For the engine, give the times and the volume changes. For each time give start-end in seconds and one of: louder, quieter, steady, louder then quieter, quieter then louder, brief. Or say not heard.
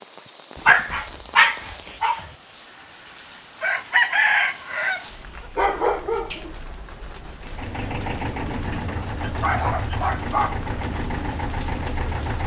7.4-12.4 steady.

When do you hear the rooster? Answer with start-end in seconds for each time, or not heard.
3.6-5.0.